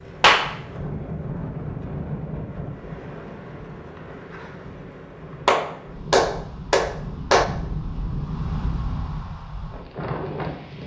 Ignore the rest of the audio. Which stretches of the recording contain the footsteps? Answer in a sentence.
The footsteps can't be heard in this clip.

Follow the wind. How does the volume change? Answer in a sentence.
The loudness of the wind goes down, then up.